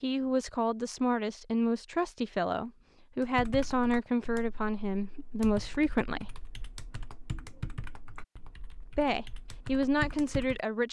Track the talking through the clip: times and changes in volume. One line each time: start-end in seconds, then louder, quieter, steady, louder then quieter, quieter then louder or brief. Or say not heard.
0.0-6.3 steady
8.8-10.8 brief.